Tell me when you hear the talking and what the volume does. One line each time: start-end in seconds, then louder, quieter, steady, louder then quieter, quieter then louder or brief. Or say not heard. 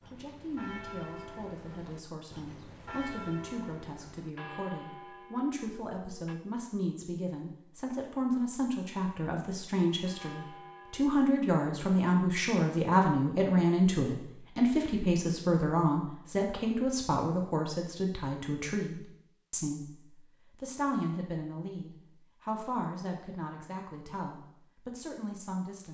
0.1-25.9 louder then quieter.